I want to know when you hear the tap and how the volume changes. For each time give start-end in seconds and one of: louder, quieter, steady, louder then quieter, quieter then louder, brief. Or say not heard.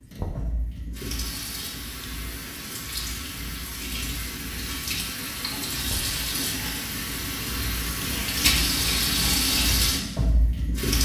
0.0-11.0 louder.